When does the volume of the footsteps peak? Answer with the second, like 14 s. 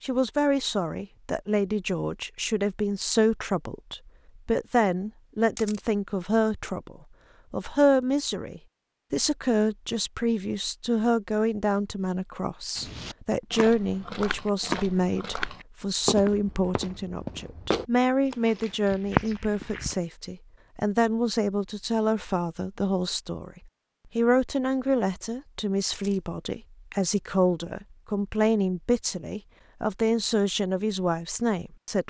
19 s.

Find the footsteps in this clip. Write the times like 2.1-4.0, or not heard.
12.8-19.9.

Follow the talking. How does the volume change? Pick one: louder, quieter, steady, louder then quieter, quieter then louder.
steady.